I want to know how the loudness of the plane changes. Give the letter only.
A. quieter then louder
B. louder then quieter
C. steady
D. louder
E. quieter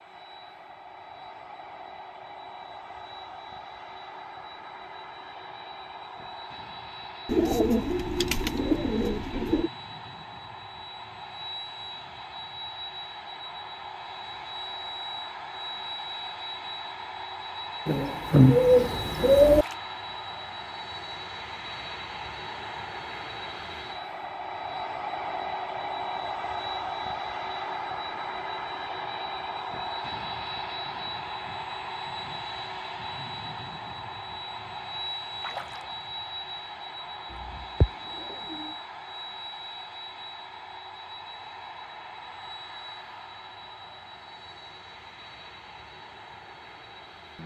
B.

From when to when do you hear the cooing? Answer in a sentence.
The cooing can be heard from 7.2 to 9.7 s, from 17.9 to 19.6 s and from 37.3 to 38.7 s.